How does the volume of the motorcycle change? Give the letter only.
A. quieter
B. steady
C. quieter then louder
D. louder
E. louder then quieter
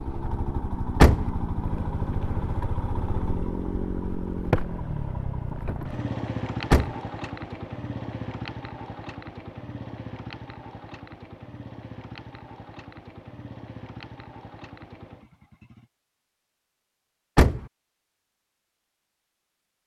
A.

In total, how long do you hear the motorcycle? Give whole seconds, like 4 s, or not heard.
16 s.